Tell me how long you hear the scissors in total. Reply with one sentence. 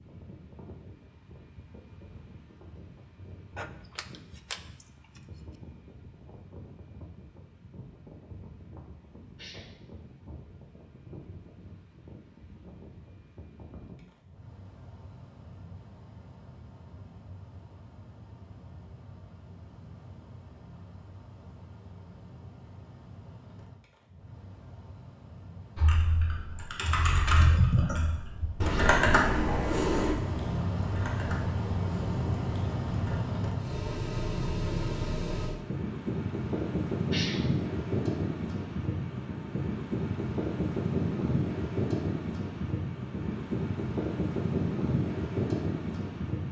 The scissors can be heard for 2 seconds in total.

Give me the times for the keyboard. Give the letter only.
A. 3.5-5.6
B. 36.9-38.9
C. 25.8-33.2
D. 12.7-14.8
C.